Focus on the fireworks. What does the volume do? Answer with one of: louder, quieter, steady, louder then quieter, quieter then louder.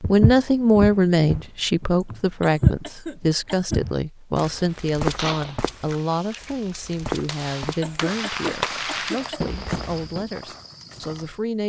quieter then louder.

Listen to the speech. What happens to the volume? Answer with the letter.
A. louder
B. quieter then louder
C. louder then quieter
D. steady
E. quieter
E.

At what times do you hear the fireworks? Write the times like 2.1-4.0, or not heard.
4.5-10.3.